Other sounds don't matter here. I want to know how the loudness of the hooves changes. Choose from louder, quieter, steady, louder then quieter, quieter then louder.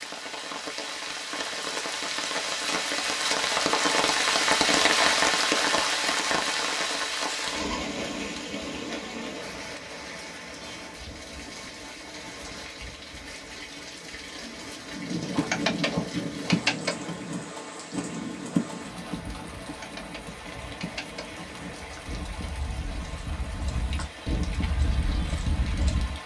quieter then louder.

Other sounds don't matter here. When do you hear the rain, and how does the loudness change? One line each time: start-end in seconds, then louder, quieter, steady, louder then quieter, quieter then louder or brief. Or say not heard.
0.0-26.2 quieter.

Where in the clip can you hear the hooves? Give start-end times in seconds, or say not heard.
14.9-26.2.